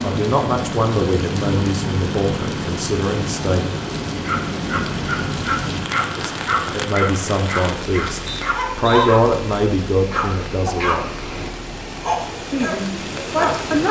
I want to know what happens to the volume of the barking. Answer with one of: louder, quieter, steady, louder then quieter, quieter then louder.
steady.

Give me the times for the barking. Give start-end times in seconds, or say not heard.
4.2-13.8.